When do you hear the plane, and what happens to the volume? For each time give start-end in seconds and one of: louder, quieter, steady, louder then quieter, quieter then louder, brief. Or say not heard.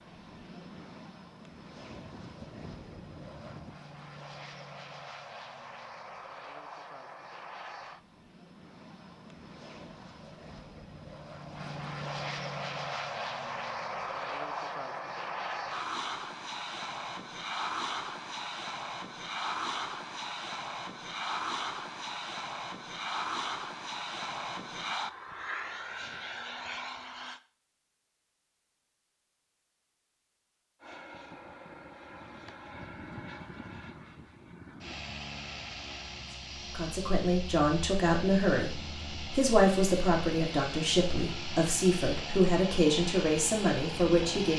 0.0-27.4 louder
30.8-44.5 louder.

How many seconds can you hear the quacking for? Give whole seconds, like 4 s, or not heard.
2 s.